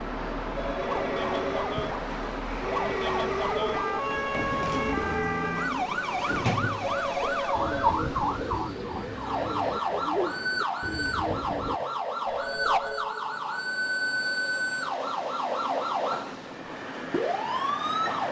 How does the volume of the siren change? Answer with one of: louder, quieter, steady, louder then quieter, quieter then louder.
steady.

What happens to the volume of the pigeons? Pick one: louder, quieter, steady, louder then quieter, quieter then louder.
steady.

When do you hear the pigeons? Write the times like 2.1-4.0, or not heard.
3.7-11.8.